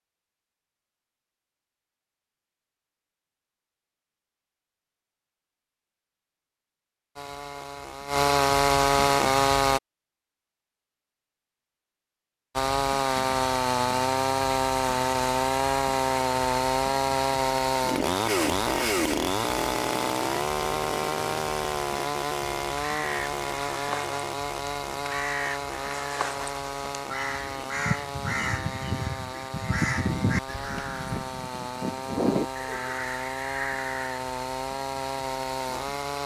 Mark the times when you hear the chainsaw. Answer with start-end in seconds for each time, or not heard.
7.2-9.8, 12.6-36.2.